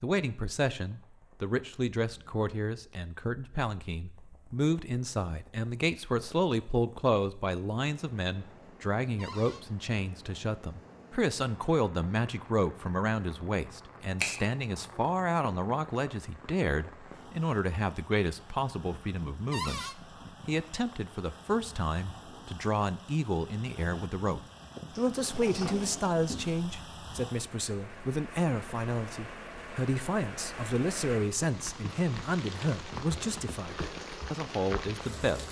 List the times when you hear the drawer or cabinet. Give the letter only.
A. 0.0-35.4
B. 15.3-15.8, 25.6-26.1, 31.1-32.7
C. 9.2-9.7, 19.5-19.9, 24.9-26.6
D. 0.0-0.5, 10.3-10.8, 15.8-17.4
C.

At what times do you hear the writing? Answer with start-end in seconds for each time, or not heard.
not heard.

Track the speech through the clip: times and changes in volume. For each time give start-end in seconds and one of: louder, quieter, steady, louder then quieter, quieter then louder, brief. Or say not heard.
0.0-35.4 steady.